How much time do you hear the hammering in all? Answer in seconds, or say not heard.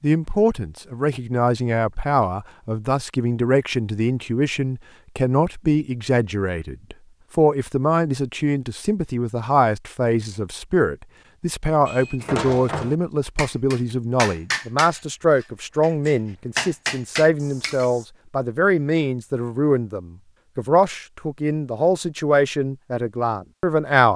6 s.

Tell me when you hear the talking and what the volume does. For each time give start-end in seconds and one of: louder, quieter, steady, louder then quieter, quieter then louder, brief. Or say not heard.
0.0-24.1 steady.